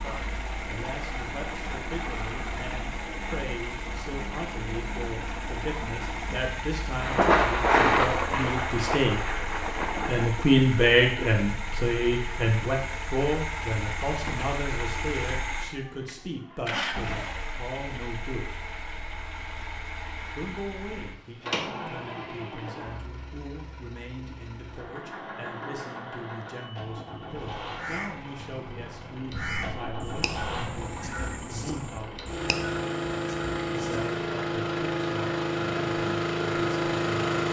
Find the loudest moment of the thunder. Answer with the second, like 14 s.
8 s.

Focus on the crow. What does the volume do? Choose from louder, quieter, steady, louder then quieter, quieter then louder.
steady.